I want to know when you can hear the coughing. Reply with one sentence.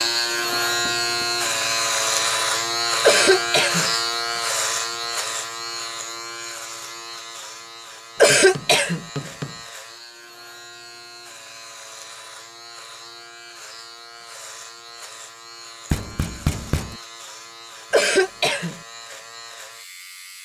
The coughing can be heard from 3.0 to 3.9 s, from 8.2 to 9.1 s and from 17.9 to 18.8 s.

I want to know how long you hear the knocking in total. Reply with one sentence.
You can hear the knocking for 3 seconds altogether.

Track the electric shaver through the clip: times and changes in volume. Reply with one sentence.
The electric shaver can be heard from 0.0 to 20.4 s, getting quieter.